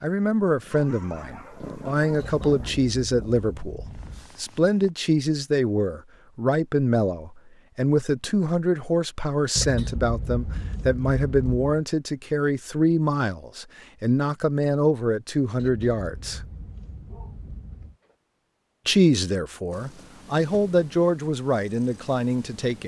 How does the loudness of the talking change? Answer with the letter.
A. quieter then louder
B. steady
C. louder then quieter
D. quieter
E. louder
B.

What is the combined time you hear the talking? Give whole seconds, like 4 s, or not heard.
20 s.